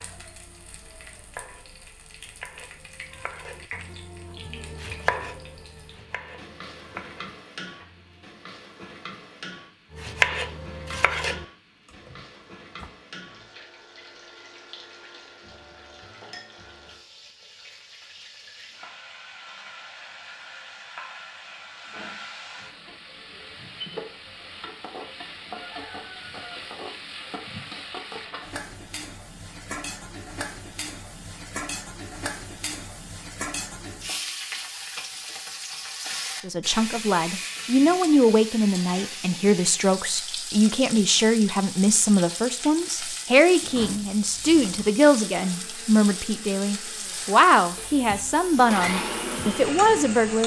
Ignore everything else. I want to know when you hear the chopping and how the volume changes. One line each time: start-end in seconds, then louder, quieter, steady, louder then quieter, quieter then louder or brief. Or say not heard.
0.0-8.2 louder then quieter
9.9-12.9 brief.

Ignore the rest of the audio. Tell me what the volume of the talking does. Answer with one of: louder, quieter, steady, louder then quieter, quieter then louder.
steady.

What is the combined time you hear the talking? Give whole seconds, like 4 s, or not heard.
14 s.